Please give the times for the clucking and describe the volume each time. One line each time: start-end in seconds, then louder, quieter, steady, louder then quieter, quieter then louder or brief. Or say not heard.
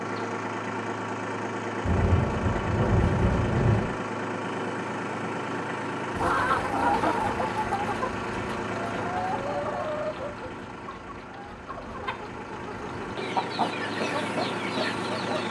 6.2-15.4 quieter then louder.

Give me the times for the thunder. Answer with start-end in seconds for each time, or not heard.
1.9-3.9.